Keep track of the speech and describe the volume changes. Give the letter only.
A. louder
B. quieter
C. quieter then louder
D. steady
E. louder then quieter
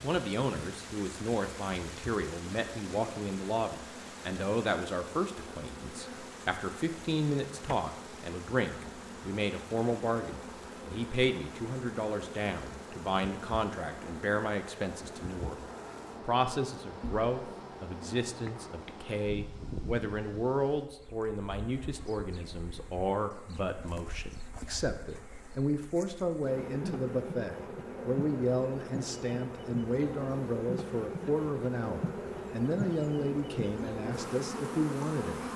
D.